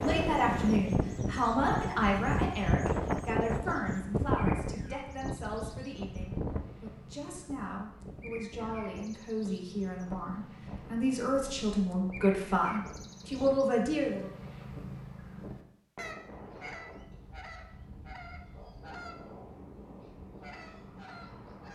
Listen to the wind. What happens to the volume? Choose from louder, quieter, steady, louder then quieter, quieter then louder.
quieter.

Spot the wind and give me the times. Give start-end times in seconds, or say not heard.
0.0-21.7.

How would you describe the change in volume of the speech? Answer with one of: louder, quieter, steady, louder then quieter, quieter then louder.
quieter then louder.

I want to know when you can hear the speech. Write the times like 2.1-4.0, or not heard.
0.0-14.3.